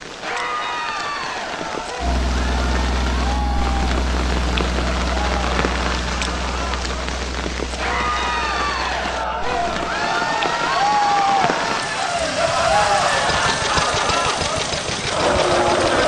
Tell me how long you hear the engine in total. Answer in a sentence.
The engine can be heard for 14 seconds in total.